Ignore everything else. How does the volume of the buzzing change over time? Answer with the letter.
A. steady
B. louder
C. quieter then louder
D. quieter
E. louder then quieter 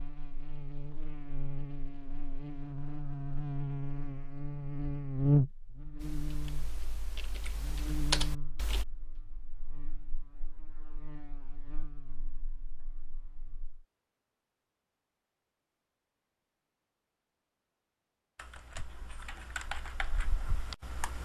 E.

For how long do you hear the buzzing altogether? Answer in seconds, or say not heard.
14 s.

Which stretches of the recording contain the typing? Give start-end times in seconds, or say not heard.
6.0-8.8, 18.4-21.1.